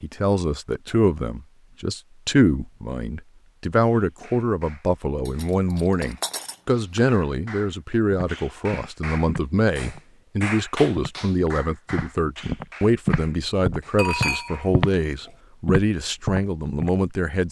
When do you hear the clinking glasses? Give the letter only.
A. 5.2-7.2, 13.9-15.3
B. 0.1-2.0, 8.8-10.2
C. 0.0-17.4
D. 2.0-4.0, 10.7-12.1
A.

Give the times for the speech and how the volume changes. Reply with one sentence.
The speech can be heard from 0.0 to 17.4 s, at a steady volume.